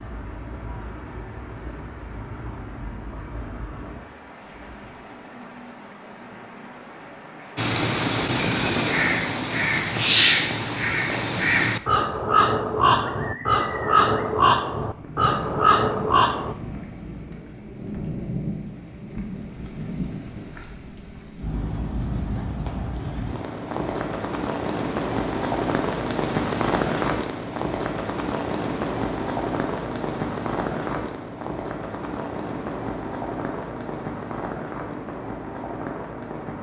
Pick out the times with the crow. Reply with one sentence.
The crow can be heard from 7.5 to 16.6 s.